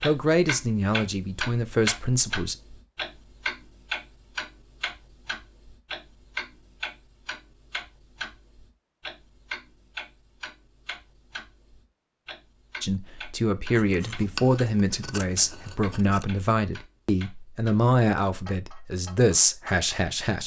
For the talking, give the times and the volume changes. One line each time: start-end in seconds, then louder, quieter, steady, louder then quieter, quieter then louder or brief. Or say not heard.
0.0-2.5 brief
12.8-20.4 steady.